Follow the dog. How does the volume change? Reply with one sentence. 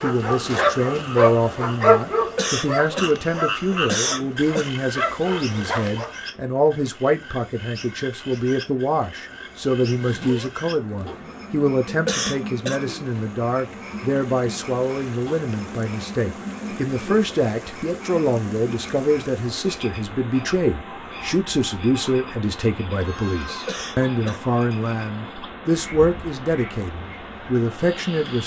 The volume of the dog goes down, then up.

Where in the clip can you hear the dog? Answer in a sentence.
The dog can be heard from 0.0 to 6.1 s.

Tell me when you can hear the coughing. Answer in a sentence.
You can hear the coughing from 2.1 to 4.7 s, from 11.8 to 12.8 s and from 23.4 to 24.4 s.